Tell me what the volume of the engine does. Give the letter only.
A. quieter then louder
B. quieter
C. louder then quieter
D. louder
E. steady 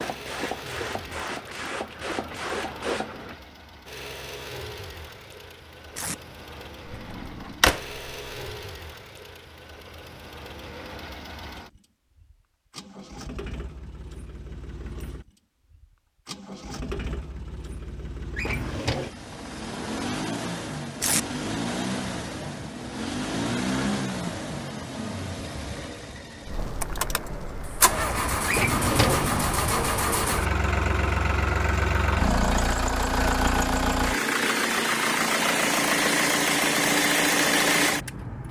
D.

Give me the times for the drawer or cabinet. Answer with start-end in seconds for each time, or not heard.
6.9-7.8, 18.4-19.1, 28.4-29.4.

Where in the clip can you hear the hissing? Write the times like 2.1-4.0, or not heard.
0.0-3.4.